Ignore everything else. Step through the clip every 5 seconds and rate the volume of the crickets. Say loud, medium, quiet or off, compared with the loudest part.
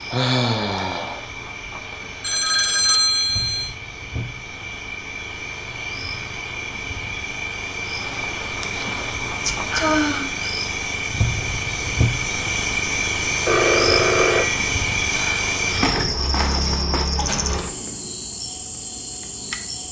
medium, medium, loud, loud.